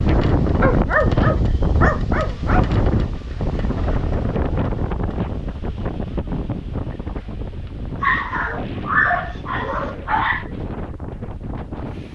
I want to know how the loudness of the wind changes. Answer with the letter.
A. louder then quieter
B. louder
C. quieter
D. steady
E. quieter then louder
C.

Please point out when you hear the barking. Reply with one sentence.
The barking can be heard from 0.6 to 2.6 s and from 8.0 to 10.5 s.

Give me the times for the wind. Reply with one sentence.
The wind can be heard from 0.0 to 12.1 s.